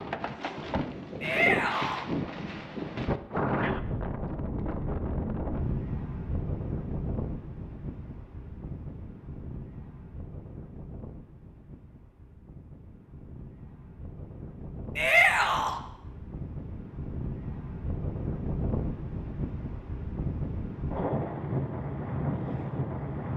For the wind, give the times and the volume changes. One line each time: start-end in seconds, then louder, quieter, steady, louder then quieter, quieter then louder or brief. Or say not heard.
0.0-23.3 quieter then louder.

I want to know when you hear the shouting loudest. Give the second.
15 s.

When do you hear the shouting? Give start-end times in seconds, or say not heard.
1.2-2.0, 14.9-15.8.